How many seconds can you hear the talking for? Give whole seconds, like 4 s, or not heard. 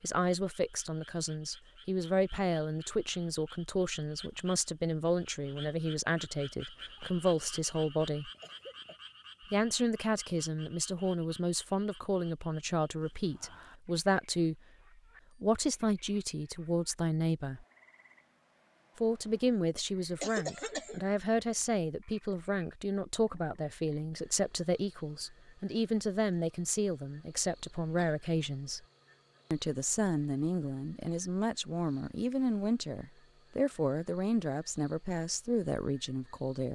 33 s.